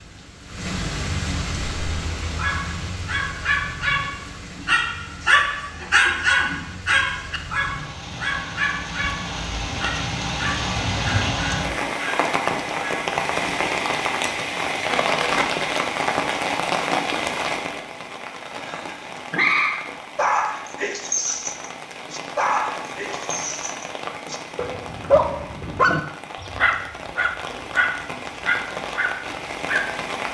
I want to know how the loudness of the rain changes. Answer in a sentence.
The volume of the rain goes up, then down.